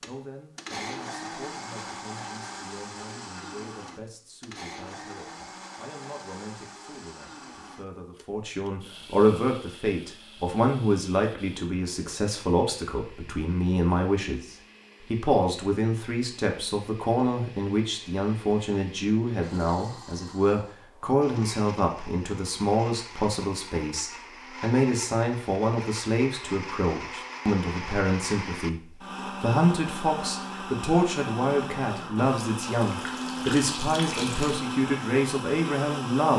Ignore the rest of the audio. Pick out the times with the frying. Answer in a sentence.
The frying can't be heard in this clip.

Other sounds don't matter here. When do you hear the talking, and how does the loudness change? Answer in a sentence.
You can hear the talking from 0.1 to 36.3 s, getting louder.